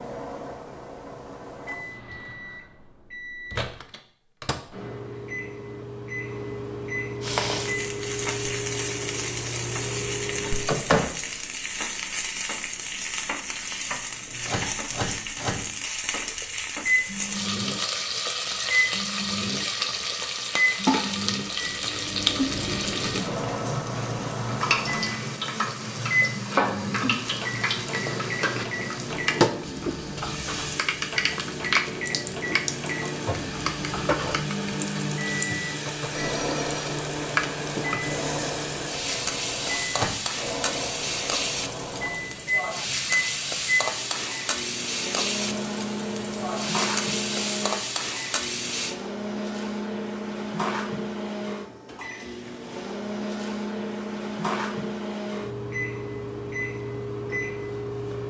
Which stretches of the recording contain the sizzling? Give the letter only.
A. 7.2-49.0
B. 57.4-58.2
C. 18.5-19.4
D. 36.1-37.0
A.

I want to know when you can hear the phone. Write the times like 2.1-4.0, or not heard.
36.1-37.0.